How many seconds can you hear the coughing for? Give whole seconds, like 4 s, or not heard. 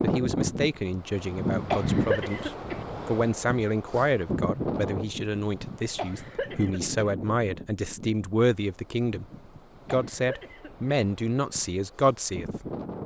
3 s.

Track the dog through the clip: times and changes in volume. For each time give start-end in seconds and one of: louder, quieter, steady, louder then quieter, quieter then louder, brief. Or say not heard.
not heard.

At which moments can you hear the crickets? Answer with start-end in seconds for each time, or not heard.
not heard.